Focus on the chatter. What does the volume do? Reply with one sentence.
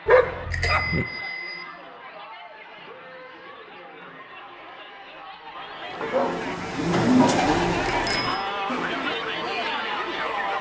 The volume of the chatter goes up.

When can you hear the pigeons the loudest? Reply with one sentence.
The loudest moment of the pigeons is at 7 seconds.